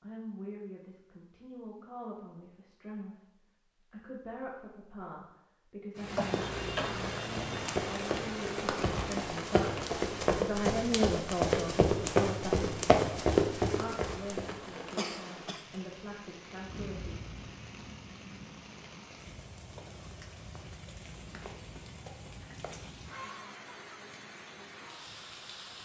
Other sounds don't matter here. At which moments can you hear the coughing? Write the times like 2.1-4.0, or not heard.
6.2-7.1, 14.9-15.8.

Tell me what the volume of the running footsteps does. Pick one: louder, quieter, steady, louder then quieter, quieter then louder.
louder.